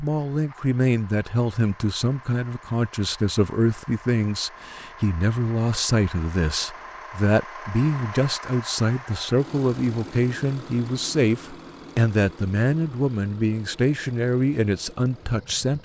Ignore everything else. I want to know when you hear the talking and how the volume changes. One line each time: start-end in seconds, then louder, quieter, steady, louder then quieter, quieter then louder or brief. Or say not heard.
0.0-15.8 steady.